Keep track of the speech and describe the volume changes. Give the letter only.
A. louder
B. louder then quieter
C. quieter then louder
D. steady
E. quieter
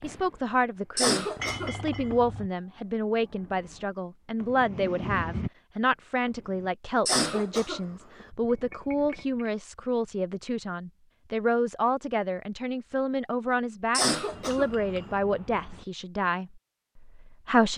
D.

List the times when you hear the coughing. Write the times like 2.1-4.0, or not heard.
0.9-2.1, 7.0-8.2, 13.9-15.1.